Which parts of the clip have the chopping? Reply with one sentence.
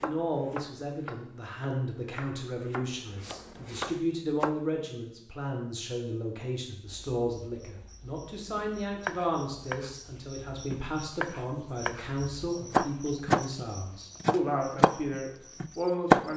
The chopping can be heard from 0.0 to 4.6 s and from 8.6 to 16.2 s.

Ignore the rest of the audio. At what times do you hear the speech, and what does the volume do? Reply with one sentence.
The speech can be heard from 0.0 to 16.3 s, at a steady volume.